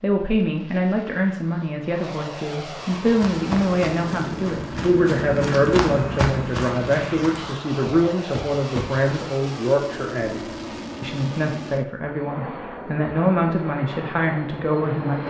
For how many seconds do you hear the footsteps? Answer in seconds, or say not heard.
6 s.